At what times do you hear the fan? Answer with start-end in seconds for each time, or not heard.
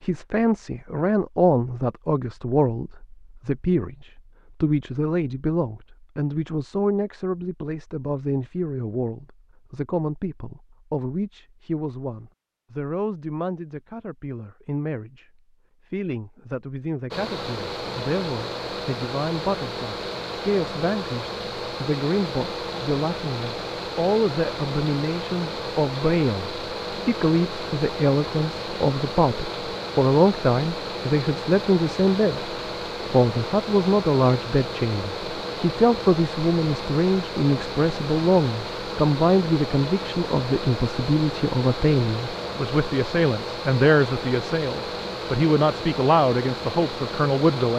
17.1-47.7.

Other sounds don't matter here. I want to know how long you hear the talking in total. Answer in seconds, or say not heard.
48 s.